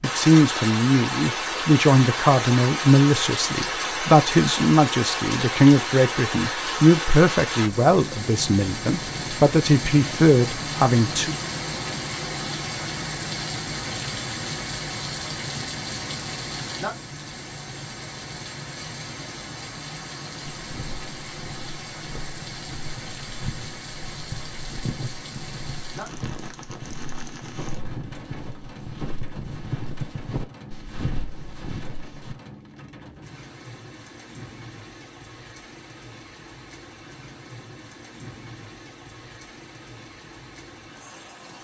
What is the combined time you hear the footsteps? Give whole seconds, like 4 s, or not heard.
12 s.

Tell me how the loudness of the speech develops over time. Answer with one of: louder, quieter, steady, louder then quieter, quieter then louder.
steady.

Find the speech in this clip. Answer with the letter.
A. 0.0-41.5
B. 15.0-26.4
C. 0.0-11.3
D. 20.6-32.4
C.